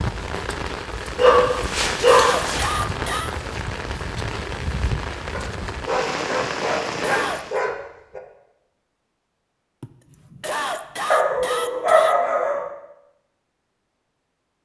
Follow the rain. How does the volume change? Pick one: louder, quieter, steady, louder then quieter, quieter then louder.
steady.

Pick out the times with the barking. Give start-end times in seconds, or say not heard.
1.1-2.7, 5.3-8.2, 11.1-12.7.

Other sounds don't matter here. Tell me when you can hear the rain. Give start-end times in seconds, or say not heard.
0.0-7.6.